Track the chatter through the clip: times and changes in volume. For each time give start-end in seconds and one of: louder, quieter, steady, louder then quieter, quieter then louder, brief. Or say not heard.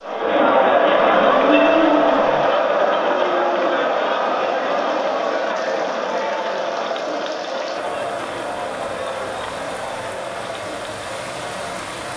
0.0-12.1 quieter.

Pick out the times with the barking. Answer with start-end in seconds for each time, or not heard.
0.9-2.5.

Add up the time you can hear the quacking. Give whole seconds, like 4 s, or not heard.
not heard.